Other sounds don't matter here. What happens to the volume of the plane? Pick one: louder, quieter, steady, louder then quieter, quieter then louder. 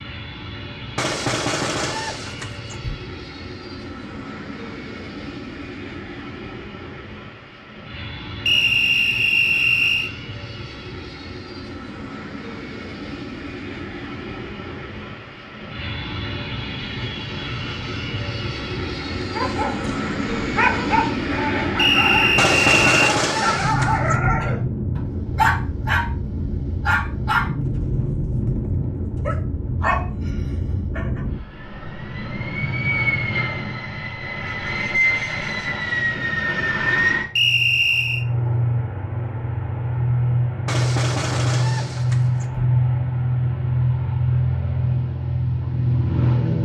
louder.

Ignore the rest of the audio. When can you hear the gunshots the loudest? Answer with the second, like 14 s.
23 s.